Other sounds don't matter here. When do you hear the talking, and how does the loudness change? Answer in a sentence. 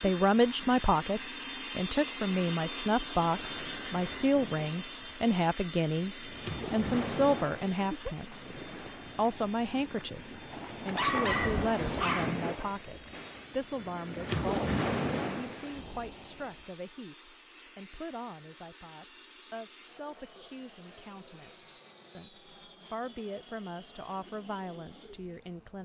You can hear the talking from 0.0 to 25.7 s, getting quieter.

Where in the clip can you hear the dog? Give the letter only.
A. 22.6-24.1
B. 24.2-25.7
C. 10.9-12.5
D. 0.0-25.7
C.